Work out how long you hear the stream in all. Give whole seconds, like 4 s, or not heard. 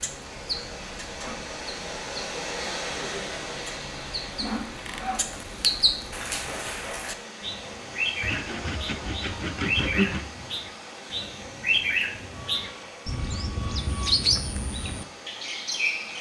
16 s.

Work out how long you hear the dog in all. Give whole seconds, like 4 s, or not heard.
not heard.